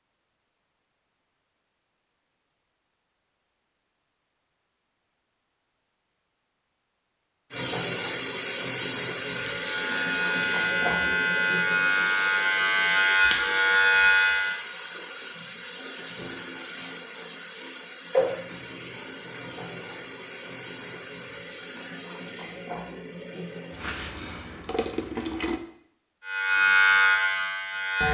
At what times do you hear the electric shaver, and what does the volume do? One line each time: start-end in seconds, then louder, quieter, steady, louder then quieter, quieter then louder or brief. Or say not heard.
9.2-14.6 louder
26.2-28.0 brief.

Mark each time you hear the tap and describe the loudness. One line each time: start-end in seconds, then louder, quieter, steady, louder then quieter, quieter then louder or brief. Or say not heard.
7.5-25.6 quieter.